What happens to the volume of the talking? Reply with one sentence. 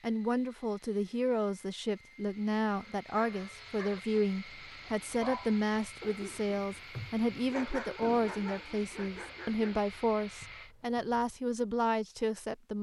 The loudness of the talking stays about the same.